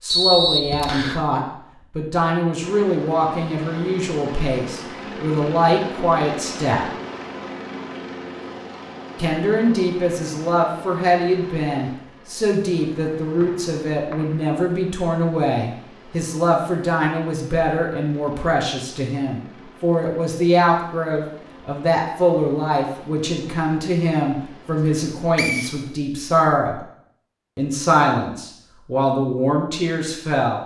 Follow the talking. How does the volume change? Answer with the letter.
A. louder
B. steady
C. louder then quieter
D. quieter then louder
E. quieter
B.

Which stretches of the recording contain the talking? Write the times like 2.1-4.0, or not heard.
0.0-6.9, 9.2-26.8, 27.6-30.6.